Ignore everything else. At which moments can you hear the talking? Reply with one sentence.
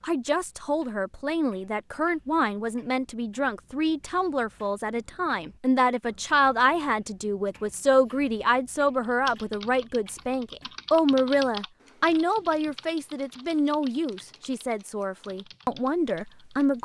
The talking can be heard from 0.0 to 16.8 s.